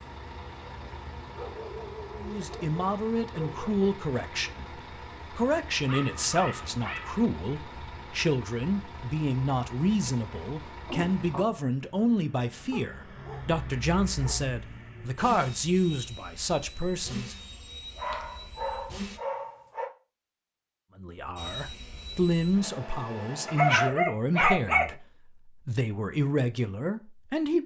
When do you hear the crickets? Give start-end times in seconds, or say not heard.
not heard.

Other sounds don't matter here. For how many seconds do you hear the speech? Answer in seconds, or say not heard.
22 s.